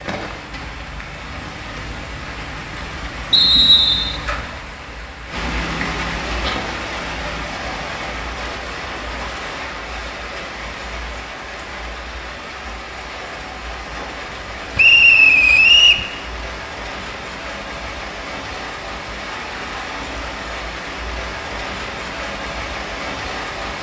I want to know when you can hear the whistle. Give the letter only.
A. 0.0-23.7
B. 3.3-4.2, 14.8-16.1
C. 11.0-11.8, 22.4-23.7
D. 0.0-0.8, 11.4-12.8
B.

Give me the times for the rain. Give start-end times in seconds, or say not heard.
0.0-23.7.